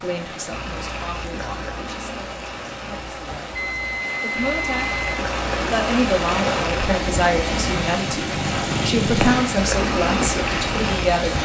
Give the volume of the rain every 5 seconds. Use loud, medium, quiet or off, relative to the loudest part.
medium, loud, loud.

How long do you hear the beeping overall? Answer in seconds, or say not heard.
2 s.